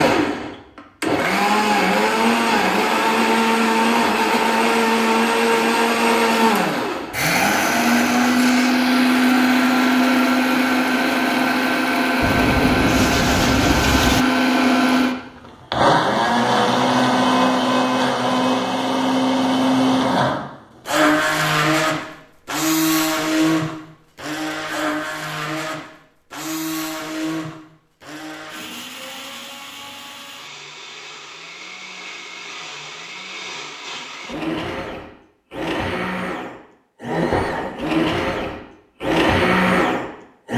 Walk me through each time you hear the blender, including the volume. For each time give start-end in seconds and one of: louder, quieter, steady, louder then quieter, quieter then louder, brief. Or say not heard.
0.0-40.5 quieter then louder.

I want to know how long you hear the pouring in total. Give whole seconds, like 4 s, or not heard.
2 s.